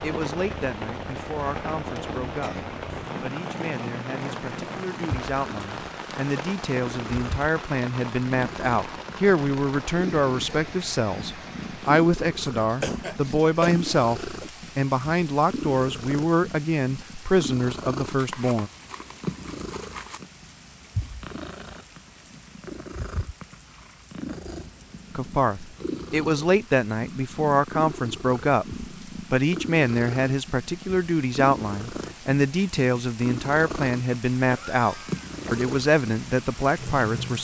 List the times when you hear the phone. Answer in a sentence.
The phone can't be heard in this clip.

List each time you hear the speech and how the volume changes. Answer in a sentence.
You can hear the speech from 0.0 to 18.7 s, getting louder; and from 25.1 to 37.3 s, at a steady volume.